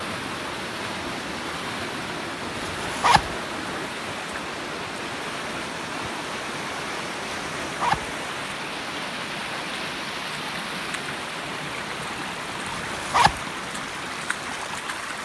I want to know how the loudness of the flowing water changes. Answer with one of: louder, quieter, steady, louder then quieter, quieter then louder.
steady.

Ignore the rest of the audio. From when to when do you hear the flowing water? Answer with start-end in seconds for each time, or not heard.
0.0-15.1.